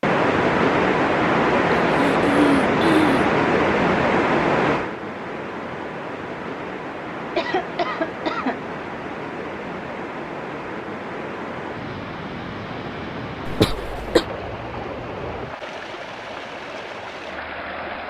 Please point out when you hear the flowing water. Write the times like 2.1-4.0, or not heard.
0.0-18.0.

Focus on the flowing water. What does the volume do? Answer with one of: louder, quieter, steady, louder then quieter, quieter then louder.
quieter.